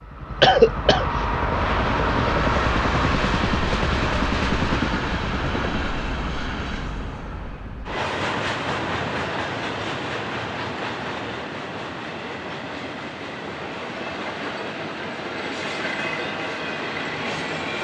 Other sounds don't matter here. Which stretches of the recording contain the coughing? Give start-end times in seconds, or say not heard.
0.4-1.1.